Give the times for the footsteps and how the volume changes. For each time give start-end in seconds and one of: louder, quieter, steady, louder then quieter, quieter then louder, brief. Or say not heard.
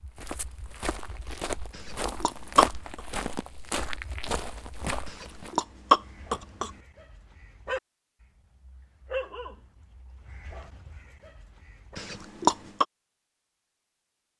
0.0-5.5 louder then quieter.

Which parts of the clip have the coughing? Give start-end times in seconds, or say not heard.
1.8-3.0, 5.0-6.7, 11.9-12.8.